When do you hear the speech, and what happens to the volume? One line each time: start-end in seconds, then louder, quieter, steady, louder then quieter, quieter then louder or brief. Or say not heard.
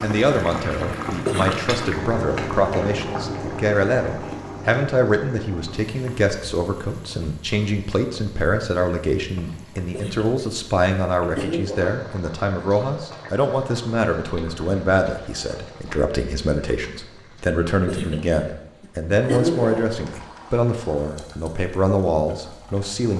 0.0-23.1 steady.